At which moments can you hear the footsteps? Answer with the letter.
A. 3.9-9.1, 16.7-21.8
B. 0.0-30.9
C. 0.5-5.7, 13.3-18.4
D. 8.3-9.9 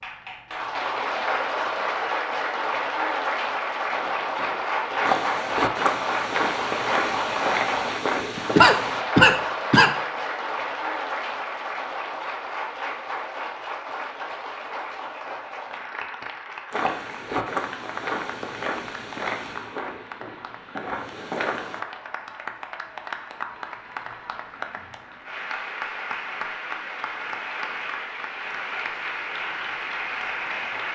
A.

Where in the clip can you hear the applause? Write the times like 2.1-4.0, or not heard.
0.0-30.9.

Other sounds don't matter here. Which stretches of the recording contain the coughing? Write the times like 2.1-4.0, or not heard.
8.3-9.9.